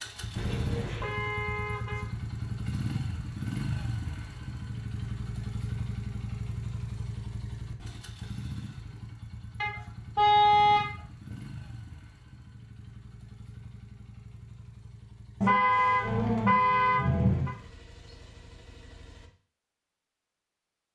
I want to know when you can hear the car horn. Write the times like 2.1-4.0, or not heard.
0.3-2.1, 9.6-11.3, 15.4-17.5.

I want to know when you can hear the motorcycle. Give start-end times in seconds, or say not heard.
0.0-19.3.